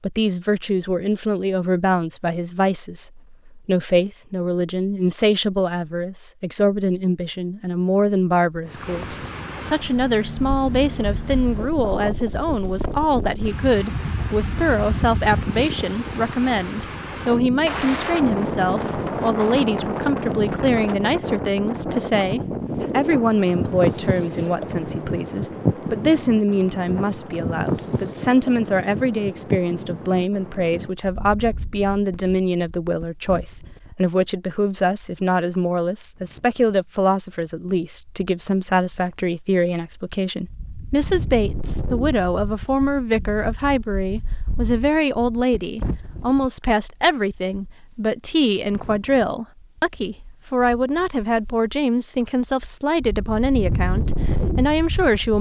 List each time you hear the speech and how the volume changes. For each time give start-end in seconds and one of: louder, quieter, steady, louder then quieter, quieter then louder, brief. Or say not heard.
0.0-55.3 steady.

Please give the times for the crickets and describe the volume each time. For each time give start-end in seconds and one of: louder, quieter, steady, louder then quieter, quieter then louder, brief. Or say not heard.
not heard.